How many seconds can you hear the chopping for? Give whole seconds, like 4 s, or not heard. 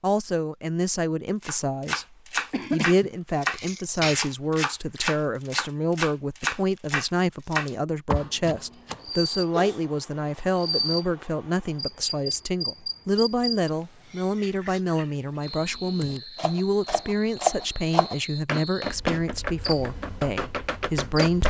13 s.